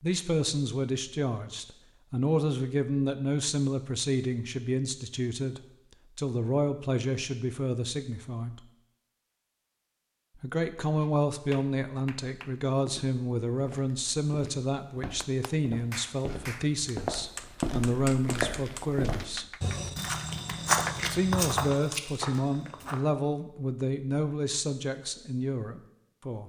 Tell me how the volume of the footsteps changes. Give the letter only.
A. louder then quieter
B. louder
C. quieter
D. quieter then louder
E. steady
B.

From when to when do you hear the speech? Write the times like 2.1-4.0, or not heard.
0.0-8.6, 10.3-19.6, 21.1-26.4.